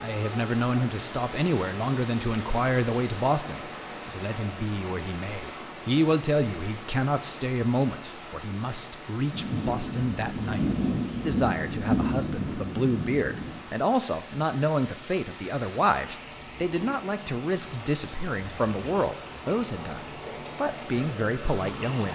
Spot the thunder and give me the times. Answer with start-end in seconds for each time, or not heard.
9.3-13.6.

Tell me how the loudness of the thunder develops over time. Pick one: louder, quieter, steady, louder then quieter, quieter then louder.
louder then quieter.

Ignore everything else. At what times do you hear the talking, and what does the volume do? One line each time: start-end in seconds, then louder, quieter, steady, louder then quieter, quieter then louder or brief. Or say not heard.
0.0-22.1 steady.